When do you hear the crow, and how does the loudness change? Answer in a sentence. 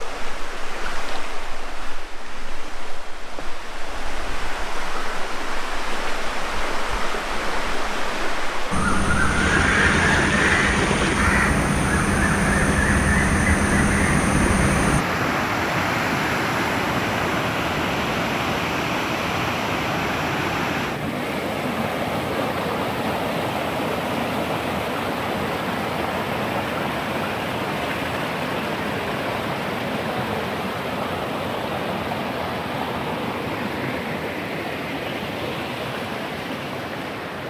The crow can be heard from 8.7 to 15.1 s, at a steady volume.